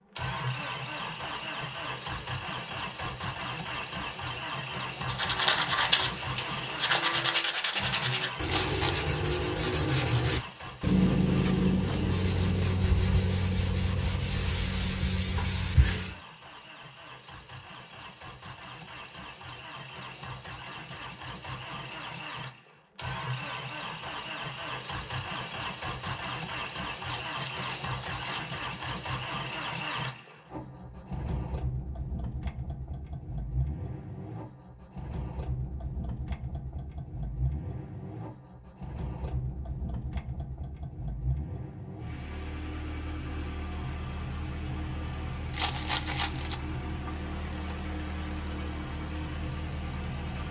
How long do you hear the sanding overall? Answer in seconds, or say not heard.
11 s.